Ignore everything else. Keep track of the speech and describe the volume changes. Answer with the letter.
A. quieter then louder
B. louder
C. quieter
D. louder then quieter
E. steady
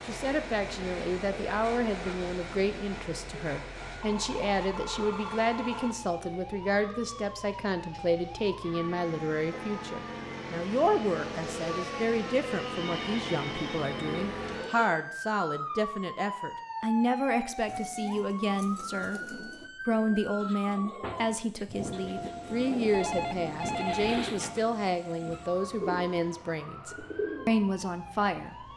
E.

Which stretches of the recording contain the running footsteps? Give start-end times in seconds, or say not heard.
not heard.